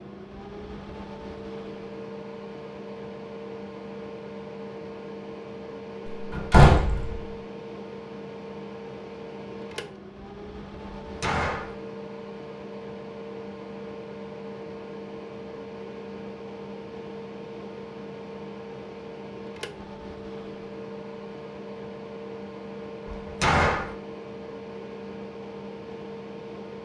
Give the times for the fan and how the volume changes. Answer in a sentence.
The fan can be heard from 0.0 to 26.8 s, at a steady volume.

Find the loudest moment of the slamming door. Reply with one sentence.
The loudest moment of the slamming door is at 7 seconds.